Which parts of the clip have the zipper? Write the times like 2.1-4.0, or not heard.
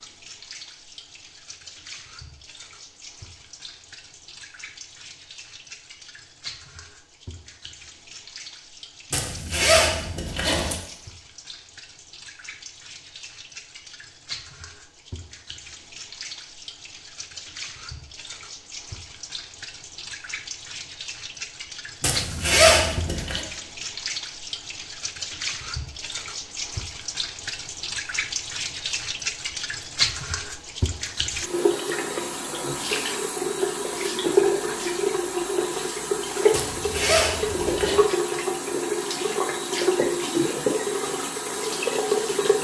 9.1-10.8, 22.0-23.4, 36.5-38.0.